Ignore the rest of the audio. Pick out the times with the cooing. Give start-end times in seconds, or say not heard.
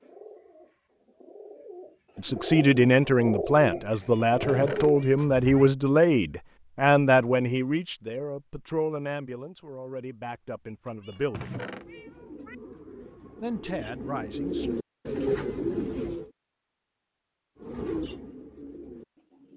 0.0-5.7, 11.7-16.3, 17.6-19.5.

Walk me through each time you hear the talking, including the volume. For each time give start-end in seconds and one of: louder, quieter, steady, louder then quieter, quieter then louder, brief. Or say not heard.
2.1-11.6 quieter
13.4-14.8 brief.